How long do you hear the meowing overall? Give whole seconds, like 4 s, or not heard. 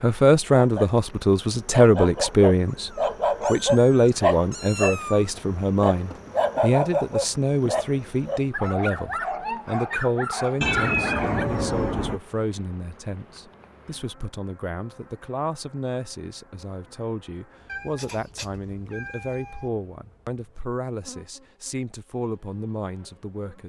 6 s.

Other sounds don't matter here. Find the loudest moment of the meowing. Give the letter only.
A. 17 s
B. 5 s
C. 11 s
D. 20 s
C.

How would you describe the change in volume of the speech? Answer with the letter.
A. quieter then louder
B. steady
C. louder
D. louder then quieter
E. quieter
E.